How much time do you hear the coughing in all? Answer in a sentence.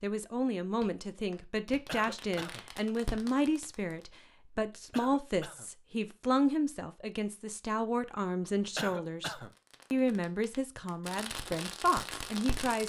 You can hear the coughing for 2 seconds altogether.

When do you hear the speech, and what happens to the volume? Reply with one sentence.
The speech can be heard from 0.0 to 12.8 s, at a steady volume.